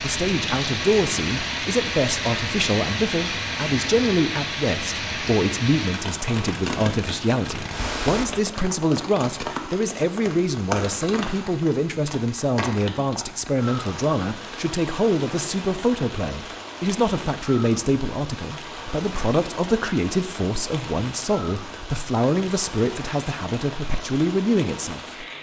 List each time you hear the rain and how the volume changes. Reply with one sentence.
You can hear the rain from 0.0 to 25.3 s, getting quieter.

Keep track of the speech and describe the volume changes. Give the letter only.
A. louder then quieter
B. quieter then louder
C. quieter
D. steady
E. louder
D.